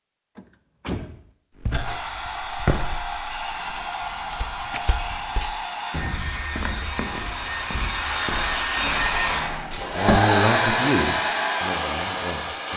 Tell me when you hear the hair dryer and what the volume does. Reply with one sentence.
You can hear the hair dryer from 1.8 to 12.7 s, getting louder.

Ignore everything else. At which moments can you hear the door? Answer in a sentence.
You can hear the door from 0.3 to 1.3 s, from 4.6 to 5.6 s and from 8.8 to 10.2 s.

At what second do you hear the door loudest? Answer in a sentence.
The volume of the door peaks at 10 seconds.